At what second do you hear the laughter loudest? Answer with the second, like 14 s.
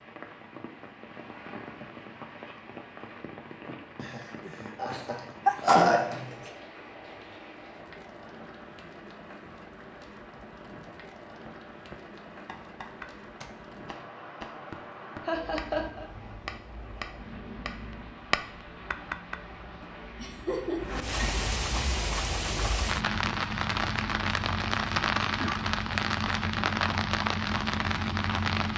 6 s.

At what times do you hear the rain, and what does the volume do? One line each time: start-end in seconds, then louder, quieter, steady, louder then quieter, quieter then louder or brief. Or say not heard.
0.0-28.7 louder.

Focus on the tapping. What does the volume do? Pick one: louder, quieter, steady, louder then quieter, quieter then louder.
louder.